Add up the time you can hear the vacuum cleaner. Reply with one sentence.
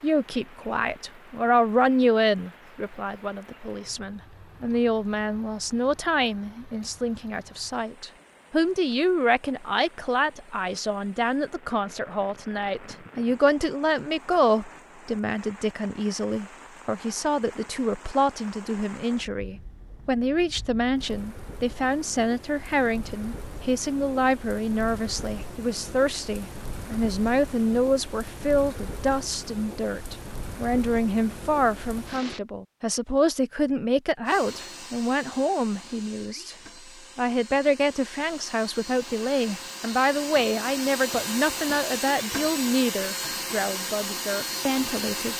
You can hear the vacuum cleaner for 11 seconds altogether.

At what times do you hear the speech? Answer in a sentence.
The speech can be heard from 0.0 to 36.5 s and from 37.1 to 45.3 s.